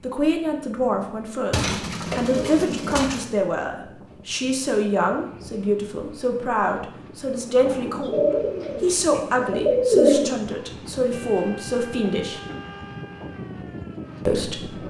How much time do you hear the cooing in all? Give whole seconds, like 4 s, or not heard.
5 s.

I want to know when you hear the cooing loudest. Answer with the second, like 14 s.
10 s.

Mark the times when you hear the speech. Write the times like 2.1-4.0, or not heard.
0.0-12.4, 14.2-14.8.